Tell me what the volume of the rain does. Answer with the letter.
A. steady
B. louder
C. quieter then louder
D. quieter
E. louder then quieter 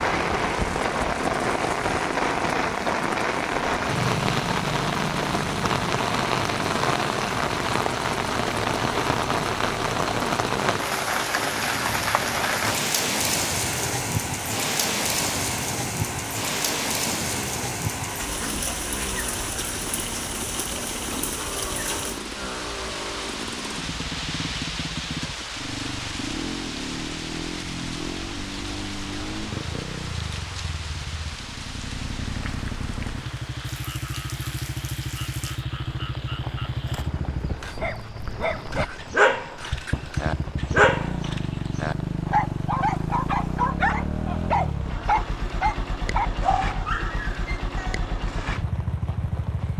D.